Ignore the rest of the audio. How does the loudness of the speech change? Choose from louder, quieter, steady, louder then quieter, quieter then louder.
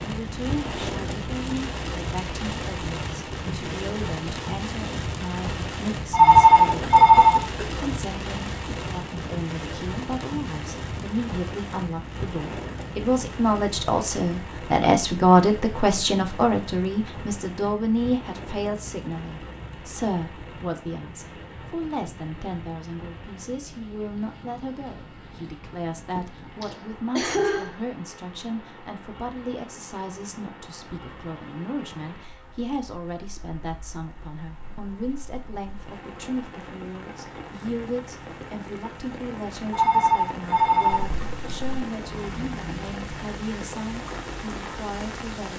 louder then quieter.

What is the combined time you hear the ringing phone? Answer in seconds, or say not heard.
3 s.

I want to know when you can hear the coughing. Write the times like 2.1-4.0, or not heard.
6.7-7.7, 26.1-27.8, 40.9-41.9.